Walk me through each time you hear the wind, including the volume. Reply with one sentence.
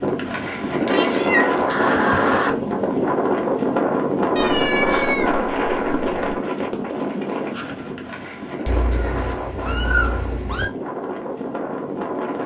You can hear the wind from 0.0 to 12.4 s, getting quieter.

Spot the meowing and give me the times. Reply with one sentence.
The meowing can be heard from 0.8 to 2.5 s, from 4.3 to 6.3 s and from 8.7 to 10.7 s.